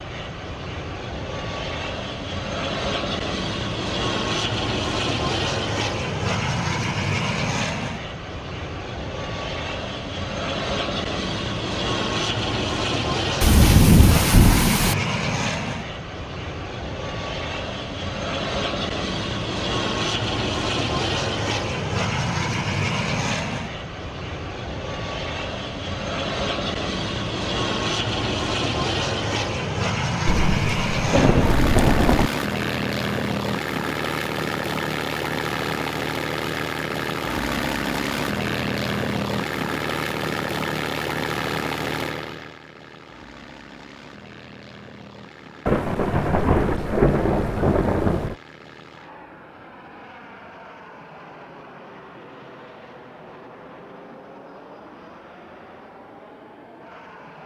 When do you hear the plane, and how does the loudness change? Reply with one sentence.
You can hear the plane from 0.0 to 57.4 s, getting quieter.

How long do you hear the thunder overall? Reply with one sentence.
You can hear the thunder for 6 seconds altogether.